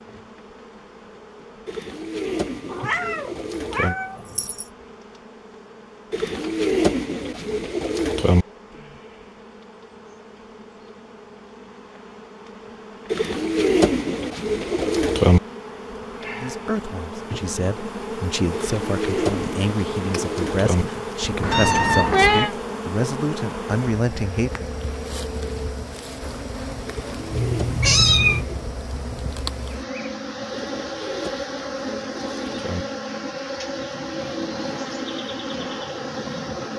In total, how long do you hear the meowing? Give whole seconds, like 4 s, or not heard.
5 s.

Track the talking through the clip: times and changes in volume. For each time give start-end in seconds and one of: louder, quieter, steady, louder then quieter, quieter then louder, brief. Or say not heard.
16.4-24.6 louder.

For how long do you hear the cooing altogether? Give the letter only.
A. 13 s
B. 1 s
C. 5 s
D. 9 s
A.